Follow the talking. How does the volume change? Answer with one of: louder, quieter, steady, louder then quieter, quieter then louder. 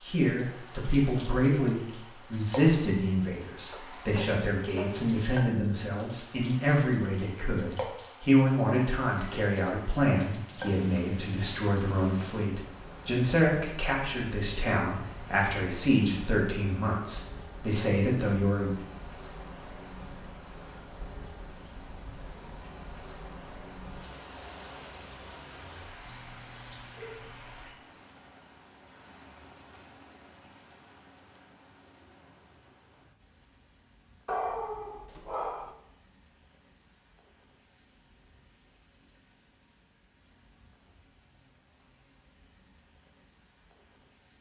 steady.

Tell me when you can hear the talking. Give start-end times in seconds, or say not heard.
0.0-18.8.